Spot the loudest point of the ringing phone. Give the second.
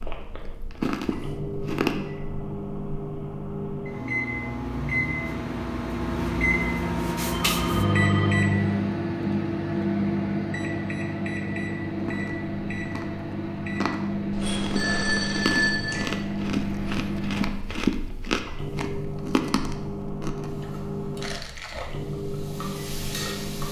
16 s.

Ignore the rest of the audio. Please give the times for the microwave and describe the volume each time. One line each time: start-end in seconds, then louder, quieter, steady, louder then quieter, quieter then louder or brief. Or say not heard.
0.0-23.6 louder then quieter.